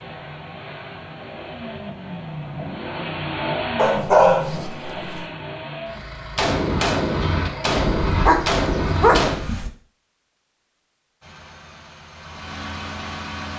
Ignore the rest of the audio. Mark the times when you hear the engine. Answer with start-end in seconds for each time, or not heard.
0.0-9.7, 11.2-13.5.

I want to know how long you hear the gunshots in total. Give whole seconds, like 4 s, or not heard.
3 s.